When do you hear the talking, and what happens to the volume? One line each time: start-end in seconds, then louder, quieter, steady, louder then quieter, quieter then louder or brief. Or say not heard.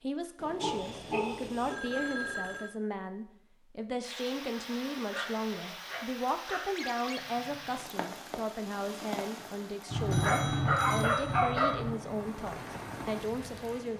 0.0-13.9 steady.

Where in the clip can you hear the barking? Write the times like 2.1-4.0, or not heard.
0.6-1.8, 5.1-6.7, 9.8-11.9.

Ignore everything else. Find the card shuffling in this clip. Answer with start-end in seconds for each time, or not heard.
not heard.